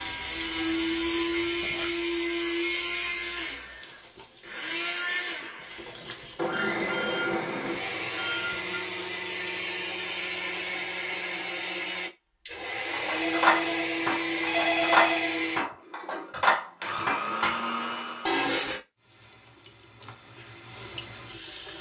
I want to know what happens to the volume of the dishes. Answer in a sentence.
The volume of the dishes goes down, then up.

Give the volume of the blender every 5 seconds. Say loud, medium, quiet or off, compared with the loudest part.
loud, loud, loud, loud, off.